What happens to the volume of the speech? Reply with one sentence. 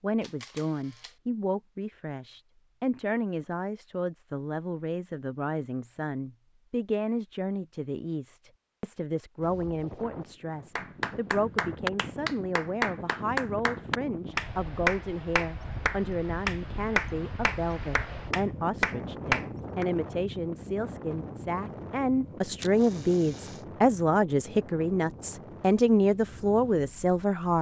The loudness of the speech goes up.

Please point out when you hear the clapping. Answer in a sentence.
You can hear the clapping from 10.8 to 19.9 s.